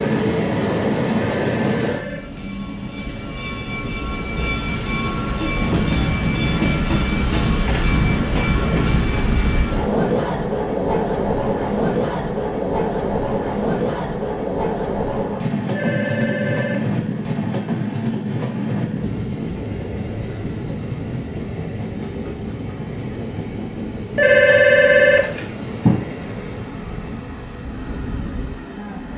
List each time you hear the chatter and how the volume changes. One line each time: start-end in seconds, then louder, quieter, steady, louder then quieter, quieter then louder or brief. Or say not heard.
not heard.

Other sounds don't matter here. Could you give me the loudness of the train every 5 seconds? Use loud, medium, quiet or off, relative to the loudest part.
loud, loud, loud, loud, medium, medium.